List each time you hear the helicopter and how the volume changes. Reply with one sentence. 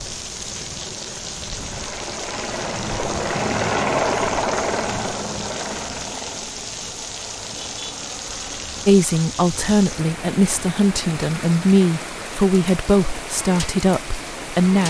You can hear the helicopter from 0.0 to 14.8 s, getting louder then quieter.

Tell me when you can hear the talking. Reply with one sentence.
You can hear the talking from 8.8 to 14.8 s.